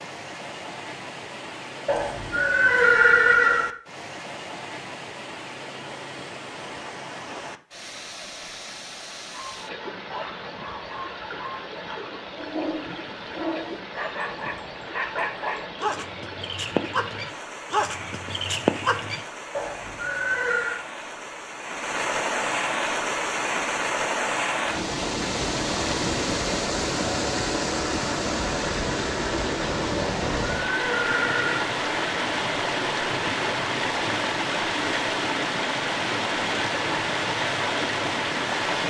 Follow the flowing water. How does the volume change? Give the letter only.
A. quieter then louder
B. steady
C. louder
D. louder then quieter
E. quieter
C.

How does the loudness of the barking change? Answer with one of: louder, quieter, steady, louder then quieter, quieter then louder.
louder.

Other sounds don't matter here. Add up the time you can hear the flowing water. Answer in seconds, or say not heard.
39 s.